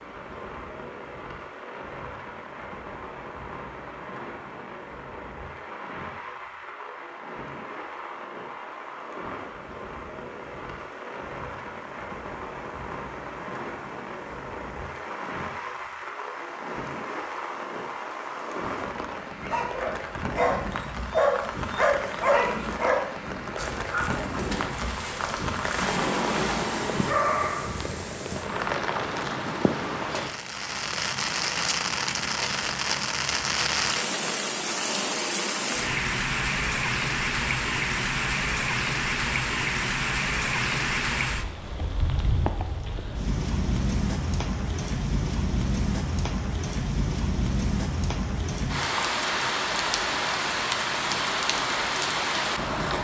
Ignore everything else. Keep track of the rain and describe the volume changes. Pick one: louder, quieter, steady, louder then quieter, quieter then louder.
louder.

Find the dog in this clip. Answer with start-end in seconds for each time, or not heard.
19.4-28.1.